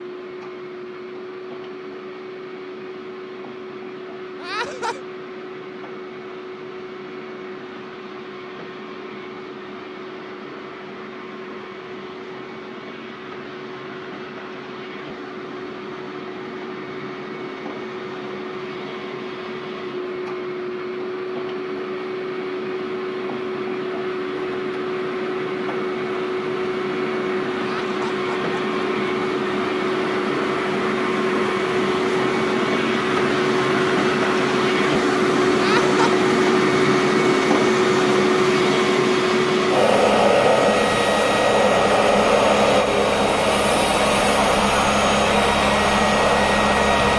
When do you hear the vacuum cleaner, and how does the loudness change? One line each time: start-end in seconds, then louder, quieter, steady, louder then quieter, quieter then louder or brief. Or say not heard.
0.0-47.1 louder.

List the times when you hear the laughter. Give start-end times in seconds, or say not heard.
4.4-5.0, 27.6-28.9, 35.5-36.2.